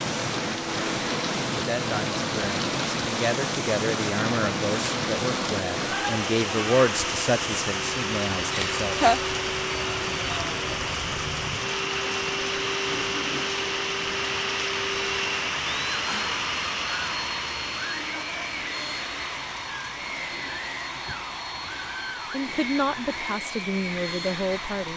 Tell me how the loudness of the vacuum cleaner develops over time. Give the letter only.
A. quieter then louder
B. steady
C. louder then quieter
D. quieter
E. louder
B.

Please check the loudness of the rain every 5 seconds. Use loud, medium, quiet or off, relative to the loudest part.
loud, loud, loud, loud, quiet.